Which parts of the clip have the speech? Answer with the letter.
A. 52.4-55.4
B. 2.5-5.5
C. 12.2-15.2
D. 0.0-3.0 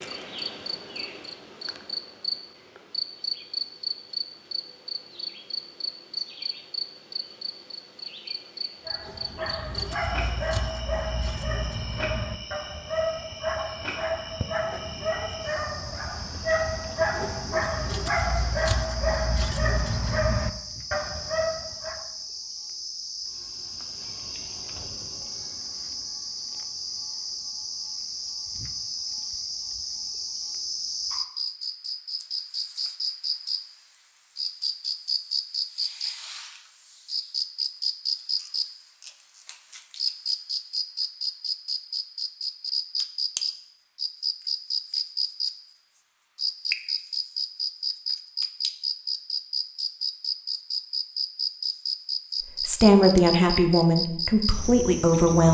A.